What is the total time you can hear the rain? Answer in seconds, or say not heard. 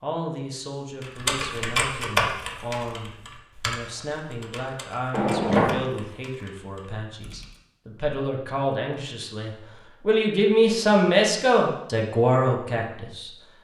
not heard.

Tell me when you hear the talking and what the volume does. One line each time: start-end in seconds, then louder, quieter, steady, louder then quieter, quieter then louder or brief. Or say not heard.
0.0-13.3 louder.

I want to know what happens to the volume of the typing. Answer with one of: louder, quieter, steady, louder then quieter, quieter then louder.
quieter.